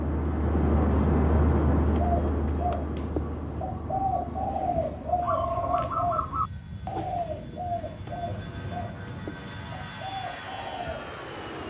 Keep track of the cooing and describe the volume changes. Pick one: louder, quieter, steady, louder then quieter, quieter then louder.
louder then quieter.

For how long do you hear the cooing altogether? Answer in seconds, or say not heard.
9 s.